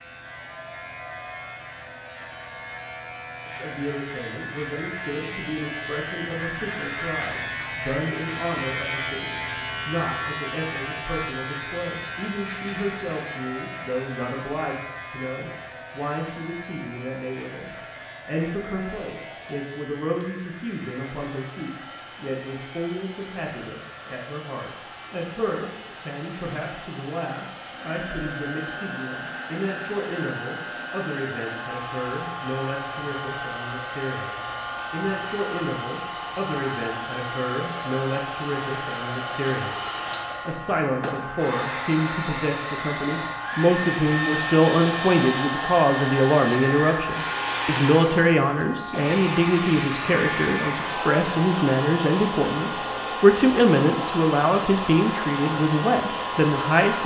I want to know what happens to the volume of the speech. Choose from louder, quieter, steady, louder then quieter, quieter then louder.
louder.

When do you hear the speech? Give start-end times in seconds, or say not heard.
3.5-57.0.